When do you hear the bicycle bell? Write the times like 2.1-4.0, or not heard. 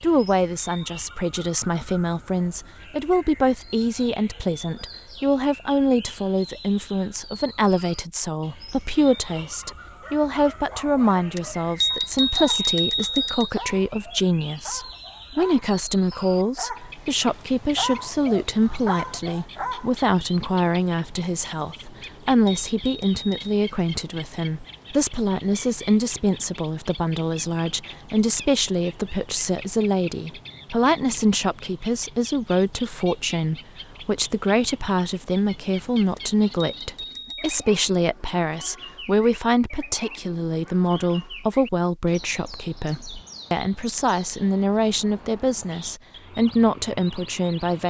11.3-13.5, 22.0-23.6, 36.1-37.5.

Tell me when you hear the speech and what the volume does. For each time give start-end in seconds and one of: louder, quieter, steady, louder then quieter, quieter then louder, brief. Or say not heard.
0.0-47.8 steady.